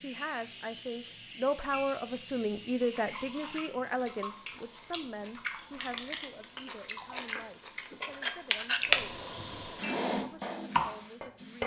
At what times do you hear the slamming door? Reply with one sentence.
You can't hear the slamming door here.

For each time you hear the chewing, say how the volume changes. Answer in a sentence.
The chewing can be heard from 2.8 to 9.0 s, getting louder.